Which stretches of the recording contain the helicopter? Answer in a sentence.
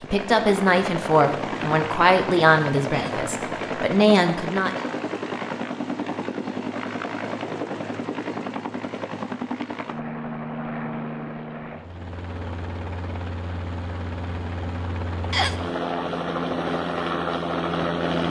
The helicopter can be heard from 0.0 to 18.2 s.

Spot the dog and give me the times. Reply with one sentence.
The dog can't be heard in this clip.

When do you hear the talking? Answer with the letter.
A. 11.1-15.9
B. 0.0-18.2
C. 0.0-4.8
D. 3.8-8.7
C.